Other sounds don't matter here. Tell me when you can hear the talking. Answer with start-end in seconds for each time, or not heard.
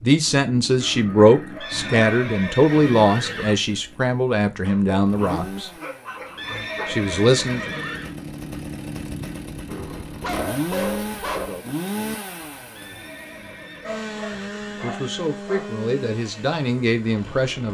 0.0-5.7, 6.8-7.6, 14.8-17.7.